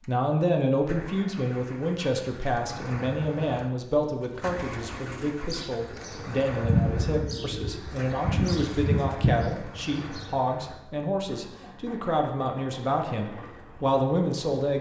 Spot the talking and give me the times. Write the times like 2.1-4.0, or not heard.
0.0-14.7.